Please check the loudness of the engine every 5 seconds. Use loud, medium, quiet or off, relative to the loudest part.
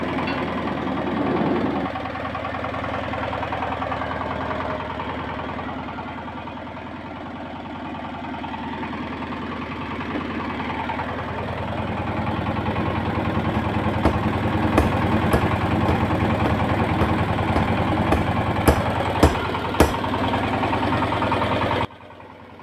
medium, medium, loud, loud, loud.